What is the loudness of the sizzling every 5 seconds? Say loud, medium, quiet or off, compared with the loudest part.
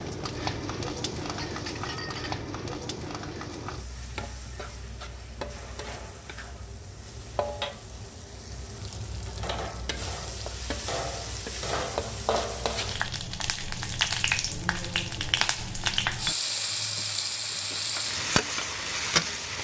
medium, medium, loud, loud.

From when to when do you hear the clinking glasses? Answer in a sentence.
You can hear the clinking glasses from 1.2 to 2.4 s and from 16.2 to 17.1 s.